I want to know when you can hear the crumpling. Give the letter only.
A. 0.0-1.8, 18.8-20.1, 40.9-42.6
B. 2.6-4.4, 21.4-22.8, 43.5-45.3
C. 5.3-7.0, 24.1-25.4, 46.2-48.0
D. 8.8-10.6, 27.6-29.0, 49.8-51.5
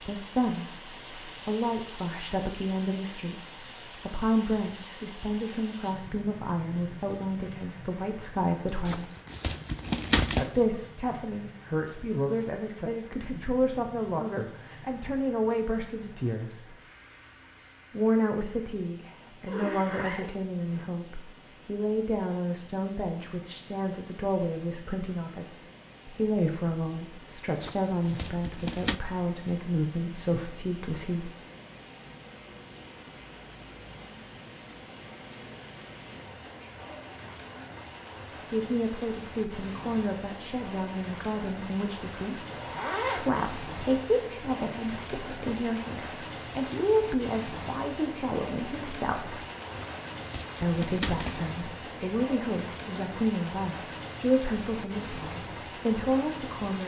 D.